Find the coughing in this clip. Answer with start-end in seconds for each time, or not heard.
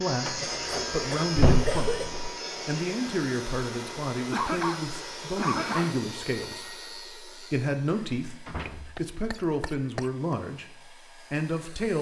0.1-2.1, 4.3-5.9, 8.7-10.3.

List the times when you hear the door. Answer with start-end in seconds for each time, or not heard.
0.5-2.3, 5.5-6.0, 8.4-9.1.